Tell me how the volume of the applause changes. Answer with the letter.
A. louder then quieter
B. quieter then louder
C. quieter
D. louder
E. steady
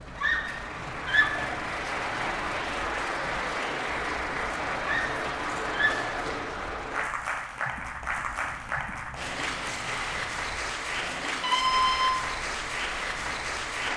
E.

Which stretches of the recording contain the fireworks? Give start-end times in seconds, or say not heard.
not heard.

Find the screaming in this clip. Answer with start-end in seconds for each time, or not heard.
0.1-1.6, 4.8-6.2, 11.4-12.2.